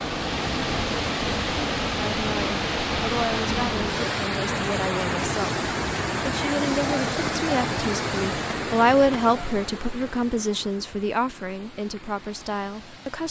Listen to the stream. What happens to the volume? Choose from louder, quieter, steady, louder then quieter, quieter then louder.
quieter.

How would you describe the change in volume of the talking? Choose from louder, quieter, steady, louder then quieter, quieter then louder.
louder then quieter.